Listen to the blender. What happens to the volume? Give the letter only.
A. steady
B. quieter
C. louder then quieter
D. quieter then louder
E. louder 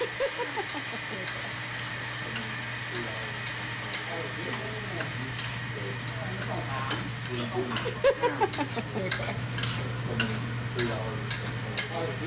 B.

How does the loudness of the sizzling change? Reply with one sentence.
The loudness of the sizzling goes up.